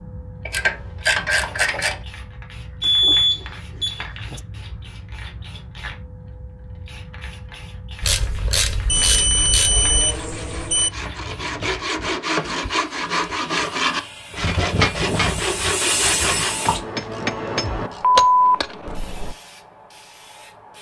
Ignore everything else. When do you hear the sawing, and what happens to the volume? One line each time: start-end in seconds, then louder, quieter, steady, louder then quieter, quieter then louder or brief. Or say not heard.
9.0-16.6 louder.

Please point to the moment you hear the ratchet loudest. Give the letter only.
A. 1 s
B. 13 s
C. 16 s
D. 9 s
A.